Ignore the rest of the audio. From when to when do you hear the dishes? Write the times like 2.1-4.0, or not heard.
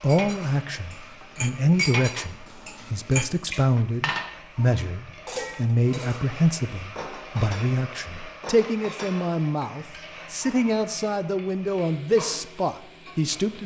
0.1-9.3.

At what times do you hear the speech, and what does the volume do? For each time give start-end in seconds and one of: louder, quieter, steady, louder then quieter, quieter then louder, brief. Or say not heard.
0.0-13.6 steady.